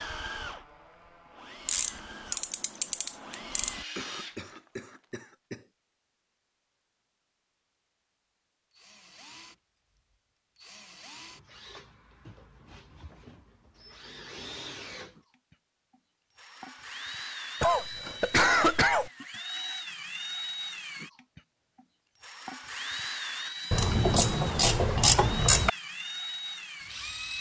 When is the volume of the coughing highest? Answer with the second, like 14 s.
19 s.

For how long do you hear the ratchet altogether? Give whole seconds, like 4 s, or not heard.
4 s.